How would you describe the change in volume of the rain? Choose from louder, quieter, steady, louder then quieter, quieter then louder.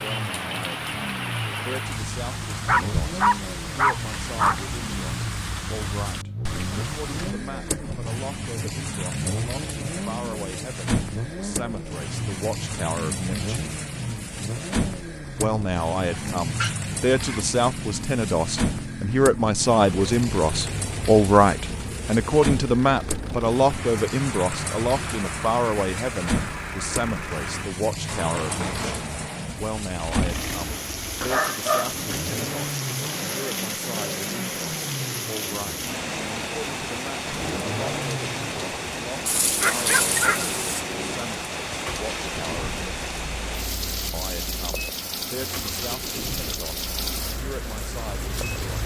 steady.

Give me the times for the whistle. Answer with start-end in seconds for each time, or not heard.
not heard.